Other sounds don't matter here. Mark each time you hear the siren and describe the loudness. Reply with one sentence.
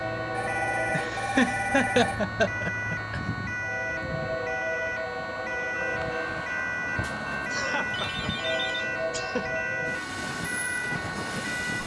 The siren can be heard from 0.0 to 11.8 s, at a steady volume.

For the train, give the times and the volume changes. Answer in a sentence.
The train can be heard from 0.0 to 11.8 s, at a steady volume.